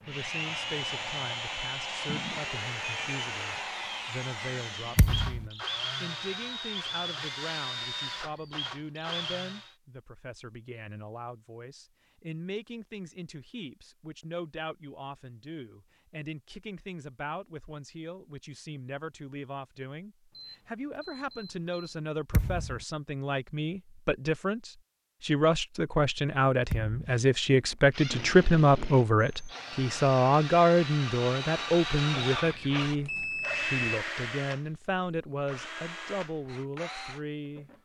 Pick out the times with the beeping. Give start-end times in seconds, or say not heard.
2.0-3.2, 20.3-22.1, 32.5-33.9.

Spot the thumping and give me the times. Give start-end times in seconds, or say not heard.
5.0-5.5, 22.3-22.8, 26.7-27.2.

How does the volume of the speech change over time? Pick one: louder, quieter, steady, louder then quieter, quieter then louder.
louder.